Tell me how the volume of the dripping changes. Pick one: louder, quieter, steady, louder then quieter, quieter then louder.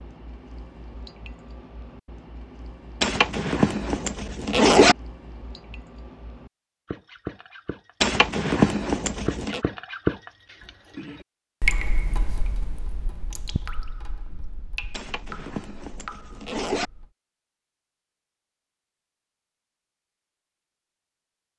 louder then quieter.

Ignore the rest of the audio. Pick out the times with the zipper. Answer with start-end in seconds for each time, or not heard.
3.0-5.0, 8.0-9.6, 14.9-16.9.